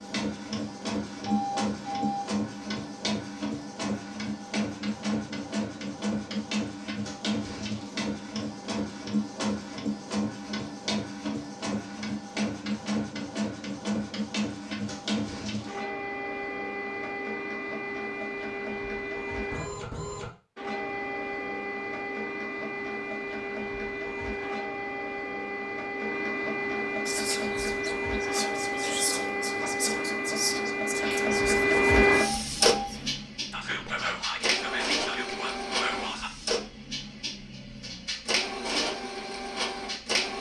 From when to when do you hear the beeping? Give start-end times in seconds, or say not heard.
1.2-2.3, 32.1-32.9.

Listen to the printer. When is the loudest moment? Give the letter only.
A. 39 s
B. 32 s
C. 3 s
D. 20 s
B.